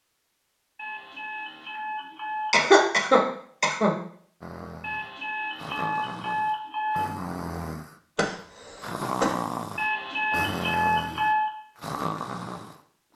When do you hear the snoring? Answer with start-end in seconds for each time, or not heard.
4.4-8.0, 8.8-13.1.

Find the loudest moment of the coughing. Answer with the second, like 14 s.
3 s.